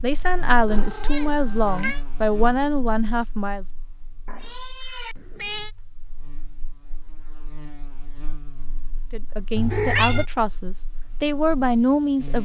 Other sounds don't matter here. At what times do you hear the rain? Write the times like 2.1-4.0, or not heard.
not heard.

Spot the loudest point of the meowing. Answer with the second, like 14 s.
10 s.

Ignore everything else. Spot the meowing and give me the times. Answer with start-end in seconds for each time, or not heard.
0.7-2.0, 4.2-5.7, 9.6-10.2.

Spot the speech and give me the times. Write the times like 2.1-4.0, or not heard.
0.0-3.6, 9.1-12.4.